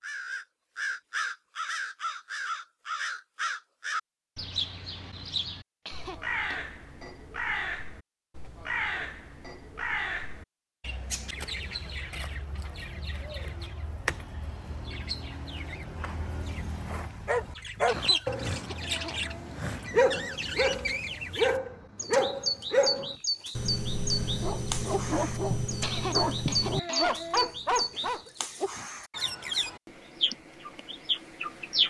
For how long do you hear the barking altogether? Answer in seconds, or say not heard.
11 s.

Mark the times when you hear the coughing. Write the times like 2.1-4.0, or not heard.
5.8-6.6, 17.9-19.6, 25.8-27.6.